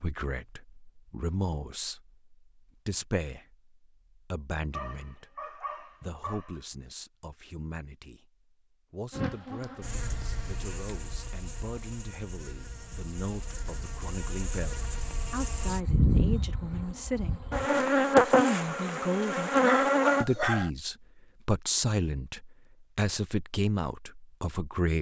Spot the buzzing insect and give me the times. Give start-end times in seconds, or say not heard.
9.1-20.2.